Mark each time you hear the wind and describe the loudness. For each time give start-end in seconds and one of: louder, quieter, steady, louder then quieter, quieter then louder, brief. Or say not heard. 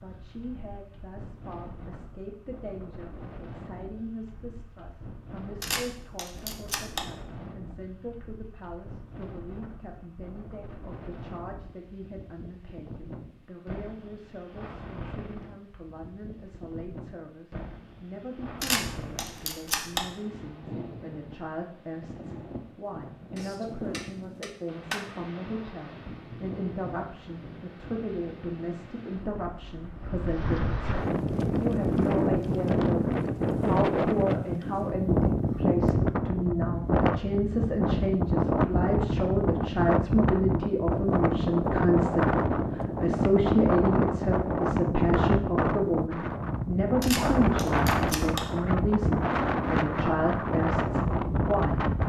0.0-52.0 louder.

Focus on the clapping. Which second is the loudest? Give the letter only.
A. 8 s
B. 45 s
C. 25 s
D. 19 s
C.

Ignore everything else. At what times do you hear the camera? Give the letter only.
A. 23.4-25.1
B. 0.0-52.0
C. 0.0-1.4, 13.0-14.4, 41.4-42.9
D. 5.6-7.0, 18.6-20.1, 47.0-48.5
D.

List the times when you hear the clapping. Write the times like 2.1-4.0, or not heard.
23.4-25.1.